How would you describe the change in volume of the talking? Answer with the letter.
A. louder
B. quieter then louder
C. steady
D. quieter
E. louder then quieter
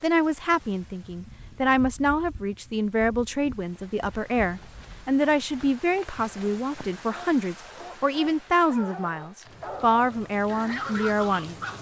C.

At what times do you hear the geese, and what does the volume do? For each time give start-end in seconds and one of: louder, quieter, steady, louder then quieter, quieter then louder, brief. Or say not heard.
not heard.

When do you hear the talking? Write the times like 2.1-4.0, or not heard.
0.0-11.6.